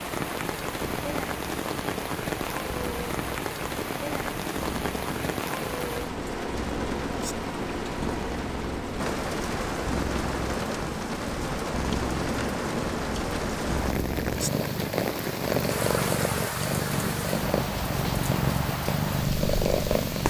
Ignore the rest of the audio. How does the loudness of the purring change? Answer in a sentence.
The volume of the purring goes up.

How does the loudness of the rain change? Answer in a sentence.
The volume of the rain stays about the same.